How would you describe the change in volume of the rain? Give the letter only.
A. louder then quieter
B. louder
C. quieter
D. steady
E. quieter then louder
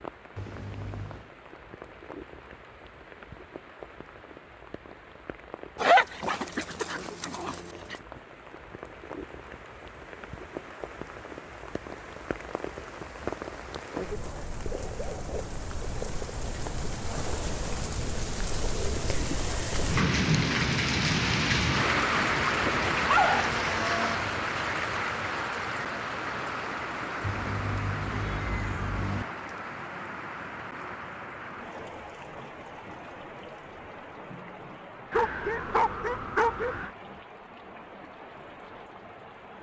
A.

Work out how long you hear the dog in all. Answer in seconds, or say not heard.
5 s.